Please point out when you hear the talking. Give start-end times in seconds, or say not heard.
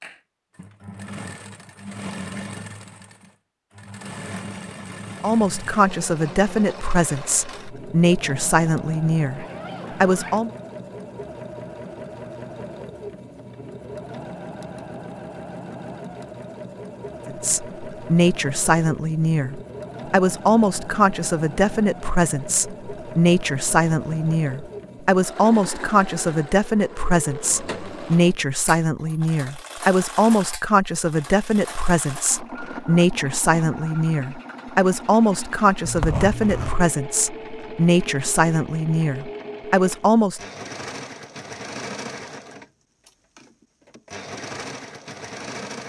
5.2-10.5, 17.2-40.4.